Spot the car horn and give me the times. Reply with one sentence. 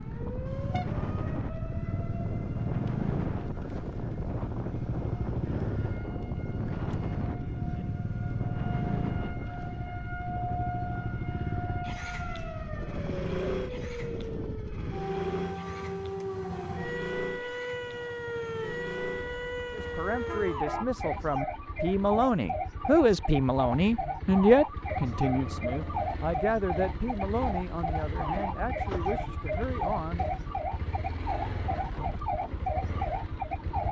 The car horn can be heard from 0.5 to 1.0 s and from 20.1 to 20.9 s.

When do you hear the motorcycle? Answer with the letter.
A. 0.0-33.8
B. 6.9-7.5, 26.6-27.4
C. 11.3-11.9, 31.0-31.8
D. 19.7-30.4
A.